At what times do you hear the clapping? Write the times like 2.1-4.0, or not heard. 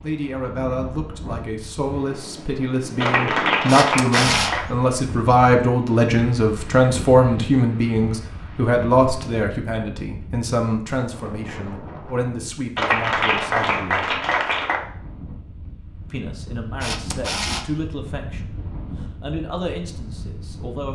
3.0-4.7, 12.8-14.8.